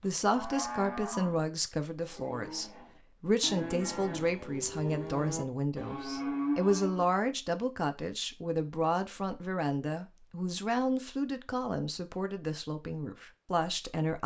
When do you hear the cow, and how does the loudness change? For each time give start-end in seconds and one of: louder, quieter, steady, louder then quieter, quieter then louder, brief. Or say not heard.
0.0-7.1 quieter then louder.